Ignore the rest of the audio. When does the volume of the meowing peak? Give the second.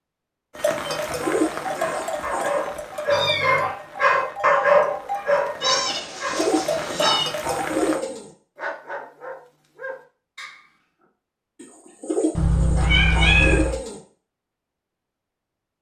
13 s.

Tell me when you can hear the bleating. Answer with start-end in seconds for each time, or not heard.
0.6-8.0.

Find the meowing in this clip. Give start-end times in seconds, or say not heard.
3.0-3.7, 5.6-7.2, 12.3-13.8.